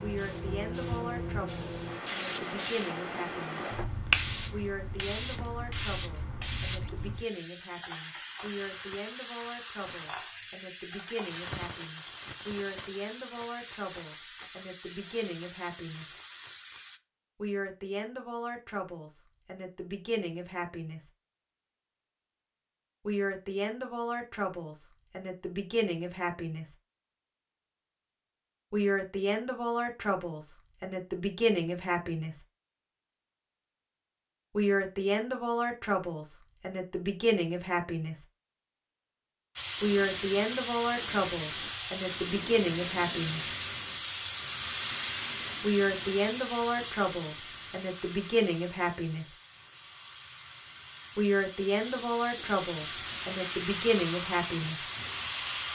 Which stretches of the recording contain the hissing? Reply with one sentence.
The hissing can be heard from 0.0 to 17.0 s and from 39.5 to 55.6 s.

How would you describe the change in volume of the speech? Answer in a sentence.
The loudness of the speech goes up.